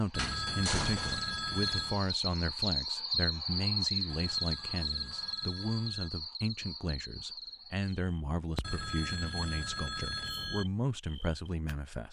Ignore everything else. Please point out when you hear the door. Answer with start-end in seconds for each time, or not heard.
0.1-1.3.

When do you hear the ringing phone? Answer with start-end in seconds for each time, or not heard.
0.1-2.0, 4.0-6.1, 8.6-10.7.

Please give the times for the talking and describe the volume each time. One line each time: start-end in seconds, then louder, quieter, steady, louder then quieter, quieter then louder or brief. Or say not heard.
0.0-12.0 steady.